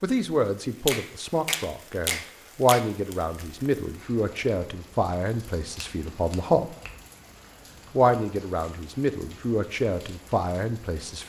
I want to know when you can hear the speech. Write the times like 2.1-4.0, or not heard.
0.0-6.8, 7.9-11.2.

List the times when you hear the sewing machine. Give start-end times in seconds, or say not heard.
not heard.